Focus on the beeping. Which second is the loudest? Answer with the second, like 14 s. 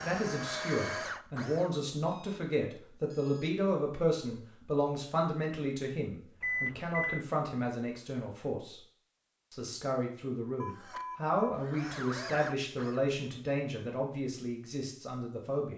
7 s.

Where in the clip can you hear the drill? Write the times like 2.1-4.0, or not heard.
0.0-1.8, 10.7-13.0.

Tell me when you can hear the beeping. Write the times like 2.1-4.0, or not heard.
2.0-3.5, 6.4-7.2, 10.6-11.6.